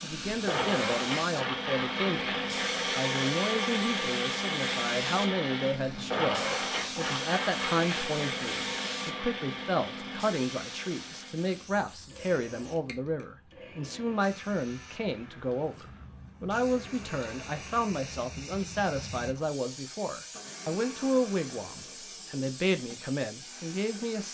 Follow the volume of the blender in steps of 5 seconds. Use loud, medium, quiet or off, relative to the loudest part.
loud, loud, quiet, quiet, quiet.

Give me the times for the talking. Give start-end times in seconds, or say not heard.
0.0-24.2.